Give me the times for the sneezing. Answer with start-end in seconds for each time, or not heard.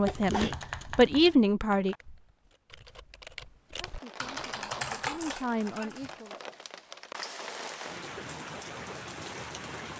0.1-1.2, 5.8-6.2.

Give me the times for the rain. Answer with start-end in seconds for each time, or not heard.
3.8-9.9.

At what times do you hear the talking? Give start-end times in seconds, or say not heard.
0.0-1.9, 3.8-6.4.